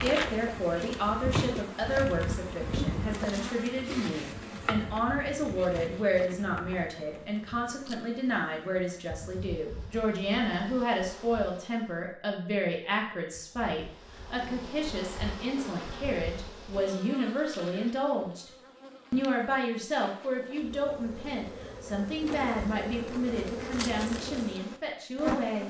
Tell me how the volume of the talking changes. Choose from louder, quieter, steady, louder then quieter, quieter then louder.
steady.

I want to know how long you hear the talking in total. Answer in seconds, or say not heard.
25 s.